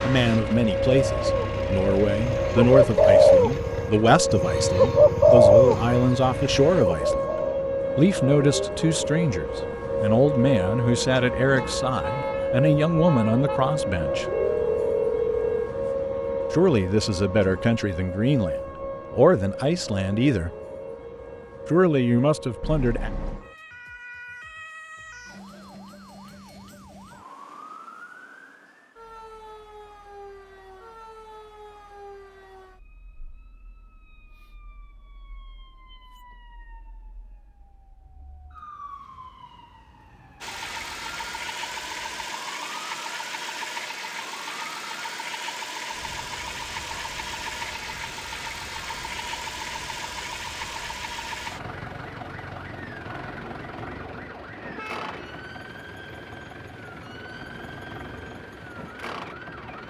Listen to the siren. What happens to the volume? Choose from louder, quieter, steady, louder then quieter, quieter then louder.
quieter.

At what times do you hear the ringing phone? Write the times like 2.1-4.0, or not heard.
14.3-15.8.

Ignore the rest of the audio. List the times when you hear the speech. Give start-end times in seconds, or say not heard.
0.0-7.3, 8.0-14.2, 16.5-20.5, 21.6-23.1.